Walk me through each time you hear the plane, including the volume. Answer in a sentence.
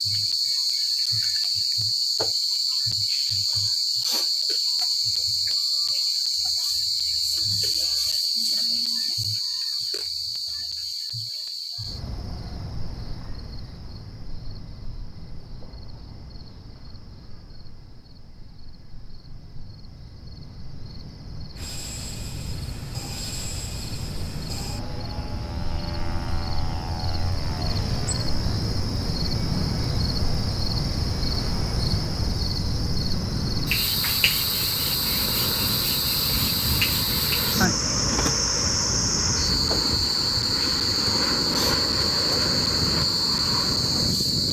The plane can be heard from 21.5 to 44.4 s, getting louder.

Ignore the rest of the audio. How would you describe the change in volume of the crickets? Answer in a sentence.
The loudness of the crickets goes down, then up.